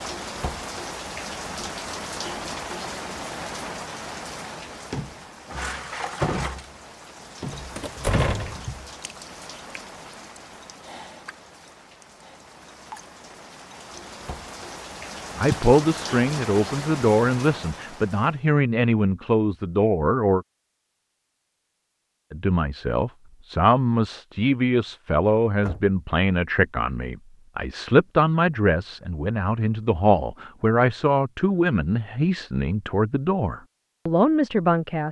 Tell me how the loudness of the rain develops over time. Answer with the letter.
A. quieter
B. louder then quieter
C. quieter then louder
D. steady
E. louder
C.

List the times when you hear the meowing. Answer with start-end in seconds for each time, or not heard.
not heard.